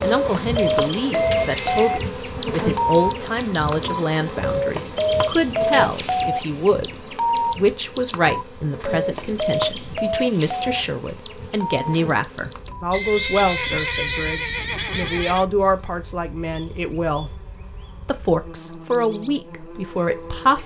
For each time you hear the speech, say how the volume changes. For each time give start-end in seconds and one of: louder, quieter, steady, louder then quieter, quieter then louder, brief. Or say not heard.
0.0-17.4 steady
18.1-20.6 brief.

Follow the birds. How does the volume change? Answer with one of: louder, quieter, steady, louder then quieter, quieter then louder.
quieter.